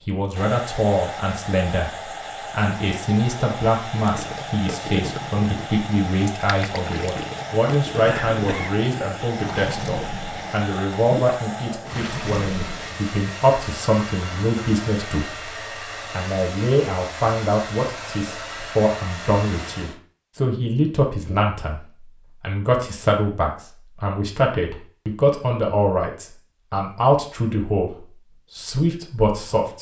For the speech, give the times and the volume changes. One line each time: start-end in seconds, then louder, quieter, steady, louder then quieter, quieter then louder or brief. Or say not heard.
0.0-15.5 steady
16.1-29.7 steady.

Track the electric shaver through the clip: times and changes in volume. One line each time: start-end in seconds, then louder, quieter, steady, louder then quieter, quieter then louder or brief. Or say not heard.
not heard.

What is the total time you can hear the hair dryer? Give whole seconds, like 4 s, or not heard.
20 s.